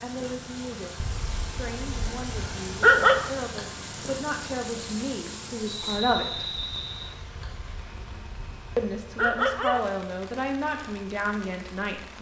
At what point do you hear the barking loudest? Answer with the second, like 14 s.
3 s.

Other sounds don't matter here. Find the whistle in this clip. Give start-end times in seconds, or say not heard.
5.7-7.2.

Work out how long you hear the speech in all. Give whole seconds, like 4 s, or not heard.
10 s.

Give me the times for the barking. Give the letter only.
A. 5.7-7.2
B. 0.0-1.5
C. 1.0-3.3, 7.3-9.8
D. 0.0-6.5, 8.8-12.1
C.